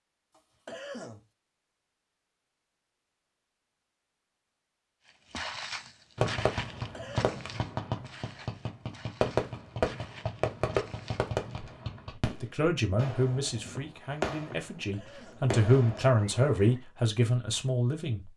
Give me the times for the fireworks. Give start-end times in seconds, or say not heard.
6.2-16.7.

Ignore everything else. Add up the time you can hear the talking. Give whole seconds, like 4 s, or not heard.
6 s.